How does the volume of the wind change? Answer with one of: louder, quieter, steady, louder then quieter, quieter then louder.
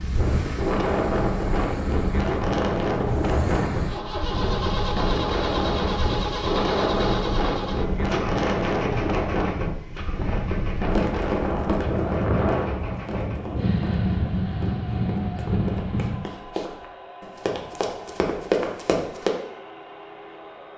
steady.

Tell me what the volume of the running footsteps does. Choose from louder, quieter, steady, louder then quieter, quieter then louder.
quieter then louder.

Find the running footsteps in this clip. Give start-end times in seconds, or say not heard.
10.9-19.3.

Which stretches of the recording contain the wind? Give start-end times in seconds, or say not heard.
0.0-16.1.